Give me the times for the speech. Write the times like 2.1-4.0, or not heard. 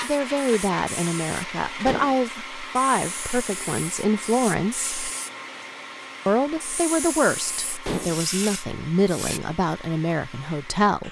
0.0-4.9, 6.2-11.0.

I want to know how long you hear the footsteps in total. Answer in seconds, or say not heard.
not heard.